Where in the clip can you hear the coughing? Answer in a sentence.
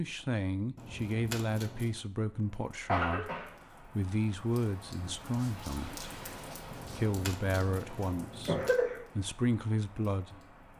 The coughing can be heard from 2.9 to 3.5 s and from 7.8 to 9.0 s.